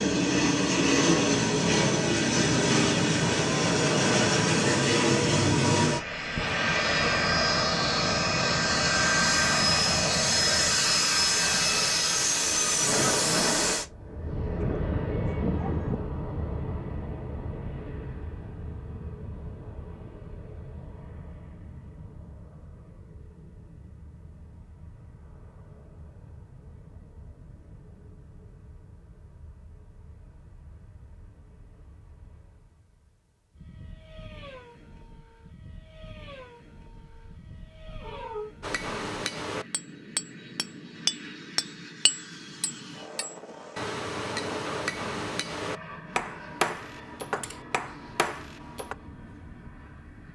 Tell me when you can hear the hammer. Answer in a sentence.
The hammer can be heard from 38.6 to 49.0 s.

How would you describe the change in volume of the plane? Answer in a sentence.
The loudness of the plane goes down, then up.